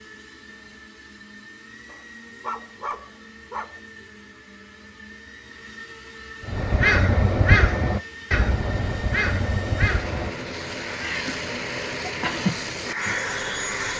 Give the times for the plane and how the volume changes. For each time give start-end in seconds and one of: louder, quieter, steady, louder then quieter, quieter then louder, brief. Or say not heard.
0.0-13.9 louder.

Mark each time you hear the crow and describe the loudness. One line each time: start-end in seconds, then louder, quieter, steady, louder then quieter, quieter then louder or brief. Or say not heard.
6.5-13.9 quieter then louder.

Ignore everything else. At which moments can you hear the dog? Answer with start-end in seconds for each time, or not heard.
1.9-3.8.